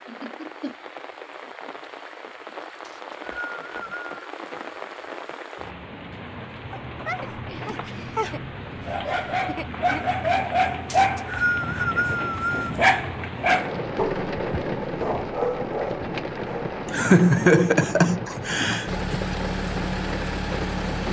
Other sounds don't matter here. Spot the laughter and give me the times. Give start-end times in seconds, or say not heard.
0.1-0.8, 7.2-10.1, 16.9-19.4.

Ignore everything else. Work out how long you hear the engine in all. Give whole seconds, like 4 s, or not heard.
2 s.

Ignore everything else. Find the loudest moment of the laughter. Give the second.
17 s.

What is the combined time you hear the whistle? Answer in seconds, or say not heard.
3 s.